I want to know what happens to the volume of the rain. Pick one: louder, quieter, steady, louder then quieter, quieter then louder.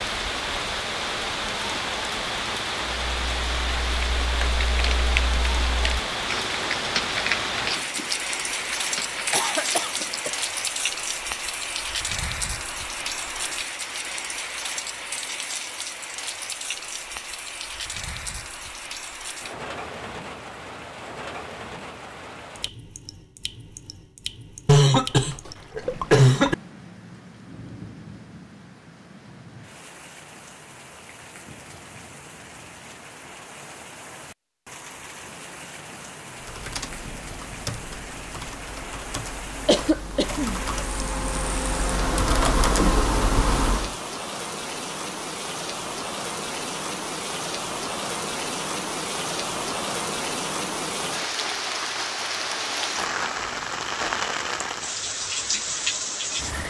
quieter then louder.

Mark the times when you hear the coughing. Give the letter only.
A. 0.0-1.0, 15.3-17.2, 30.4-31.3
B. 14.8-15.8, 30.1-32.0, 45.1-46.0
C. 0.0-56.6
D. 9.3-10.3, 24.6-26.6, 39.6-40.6
D.